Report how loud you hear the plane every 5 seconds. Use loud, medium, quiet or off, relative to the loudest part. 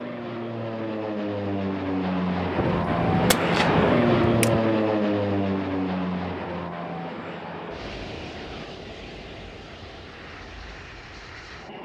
loud, medium, quiet.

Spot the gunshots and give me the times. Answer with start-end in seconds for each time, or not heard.
2.5-4.6.